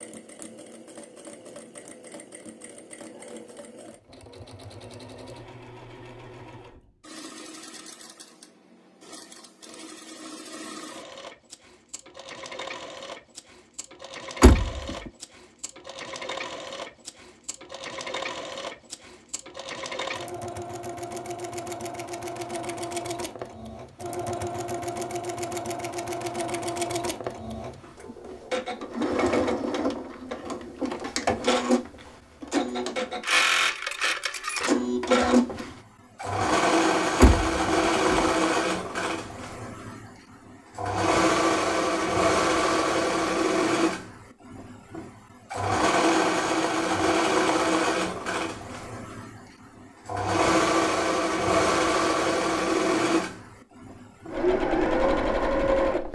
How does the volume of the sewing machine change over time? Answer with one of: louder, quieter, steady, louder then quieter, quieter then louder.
louder.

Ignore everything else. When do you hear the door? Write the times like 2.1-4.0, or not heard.
14.4-15.1, 37.2-38.3.